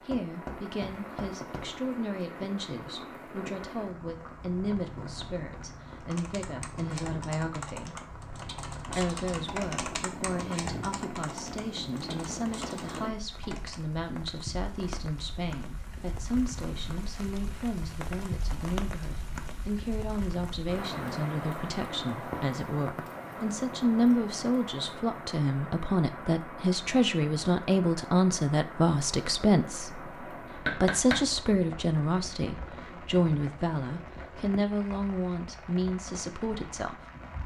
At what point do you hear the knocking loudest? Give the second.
31 s.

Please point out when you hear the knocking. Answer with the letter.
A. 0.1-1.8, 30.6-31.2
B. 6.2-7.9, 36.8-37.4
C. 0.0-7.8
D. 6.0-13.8
A.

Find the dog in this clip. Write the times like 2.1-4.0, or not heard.
not heard.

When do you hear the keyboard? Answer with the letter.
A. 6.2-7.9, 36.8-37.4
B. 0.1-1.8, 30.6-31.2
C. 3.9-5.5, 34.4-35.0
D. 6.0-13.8
D.